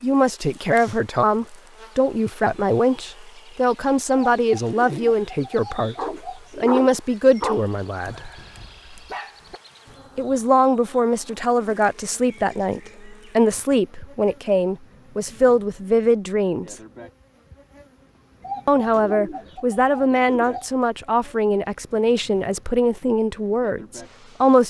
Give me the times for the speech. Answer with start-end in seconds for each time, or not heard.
0.0-6.0, 6.5-8.3, 10.2-16.8, 18.6-24.6.